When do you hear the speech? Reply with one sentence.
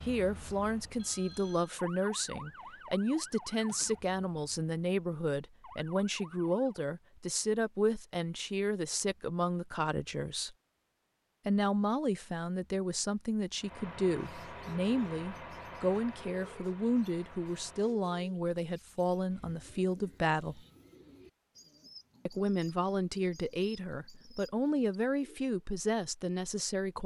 The speech can be heard from 0.0 to 10.6 s, from 11.4 to 20.6 s and from 22.2 to 27.0 s.